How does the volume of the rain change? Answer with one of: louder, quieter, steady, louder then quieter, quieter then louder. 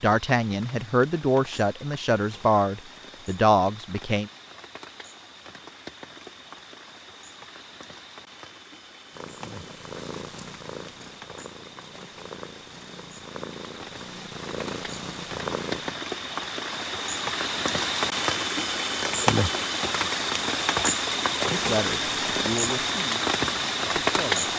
louder.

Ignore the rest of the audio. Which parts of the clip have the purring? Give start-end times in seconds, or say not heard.
9.1-15.9.